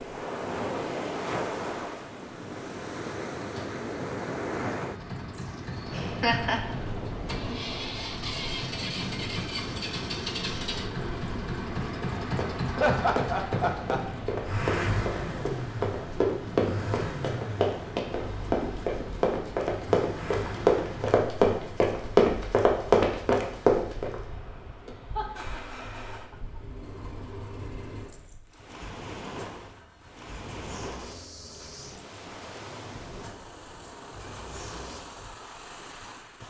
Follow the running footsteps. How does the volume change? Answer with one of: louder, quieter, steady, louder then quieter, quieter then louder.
louder.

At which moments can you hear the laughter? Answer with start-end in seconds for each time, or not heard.
6.0-6.8, 12.8-14.0, 25.1-26.4.